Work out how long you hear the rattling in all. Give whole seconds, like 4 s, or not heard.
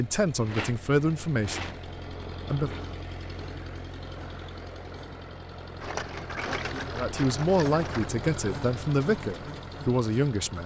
4 s.